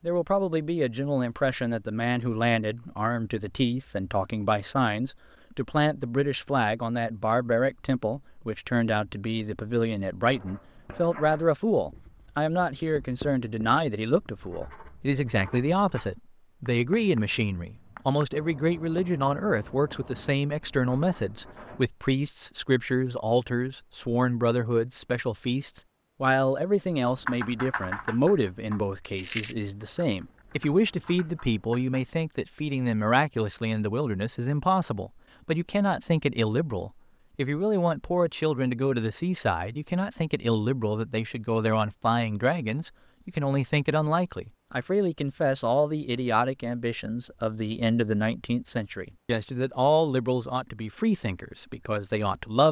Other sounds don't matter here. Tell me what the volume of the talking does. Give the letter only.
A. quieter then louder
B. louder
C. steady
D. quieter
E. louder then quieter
C.